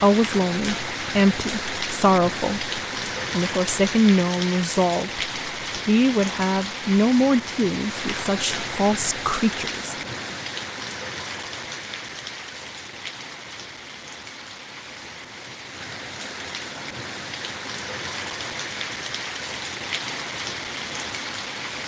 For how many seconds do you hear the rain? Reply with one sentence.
You can hear the rain for 22 seconds altogether.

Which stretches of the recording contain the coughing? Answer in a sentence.
You can't hear the coughing here.